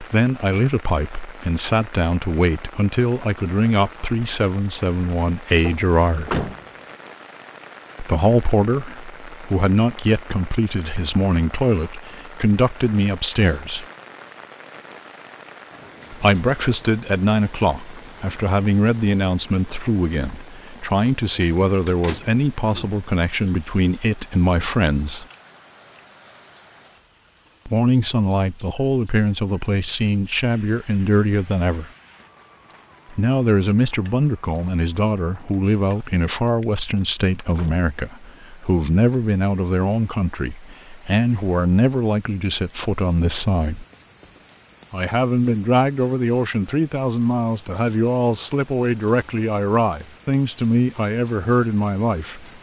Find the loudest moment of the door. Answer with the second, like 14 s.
6 s.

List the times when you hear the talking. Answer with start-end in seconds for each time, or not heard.
0.0-6.5, 8.0-13.8, 16.1-25.2, 27.6-31.9, 33.1-43.9, 44.9-52.5.